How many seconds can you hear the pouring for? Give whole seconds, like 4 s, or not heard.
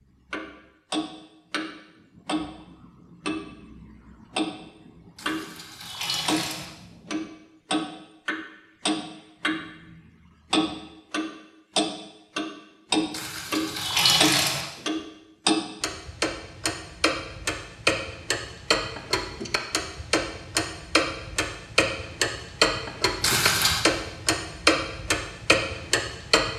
4 s.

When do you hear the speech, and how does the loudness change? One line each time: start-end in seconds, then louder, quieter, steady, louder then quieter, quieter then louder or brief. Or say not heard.
not heard.